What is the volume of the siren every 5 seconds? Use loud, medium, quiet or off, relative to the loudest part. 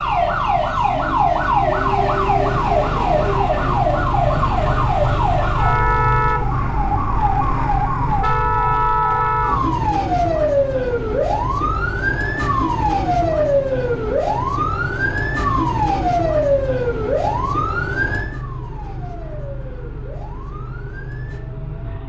loud, loud, loud, loud, quiet.